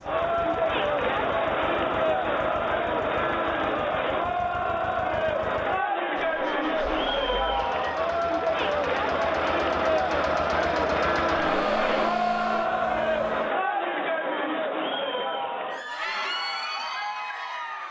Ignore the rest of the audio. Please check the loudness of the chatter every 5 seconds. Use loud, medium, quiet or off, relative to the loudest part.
loud, loud, loud, medium.